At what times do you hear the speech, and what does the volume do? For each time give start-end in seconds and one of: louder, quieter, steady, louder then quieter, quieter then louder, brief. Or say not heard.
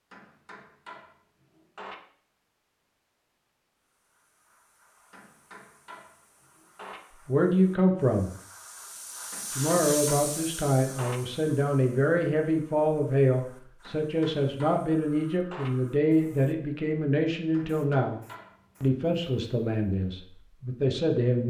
7.2-8.3 brief
9.6-18.2 steady
18.8-21.4 brief.